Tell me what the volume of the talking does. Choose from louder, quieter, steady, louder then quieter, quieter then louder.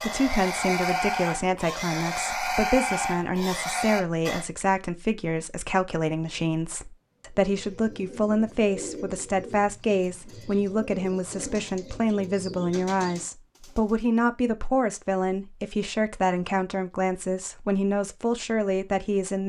steady.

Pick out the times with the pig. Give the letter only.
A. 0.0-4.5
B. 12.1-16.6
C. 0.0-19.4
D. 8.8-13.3
A.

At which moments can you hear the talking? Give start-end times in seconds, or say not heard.
0.0-19.4.